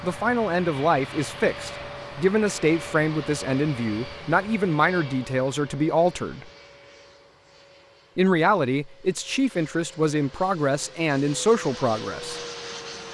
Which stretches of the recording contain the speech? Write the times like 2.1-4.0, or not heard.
0.0-6.5, 8.2-12.4.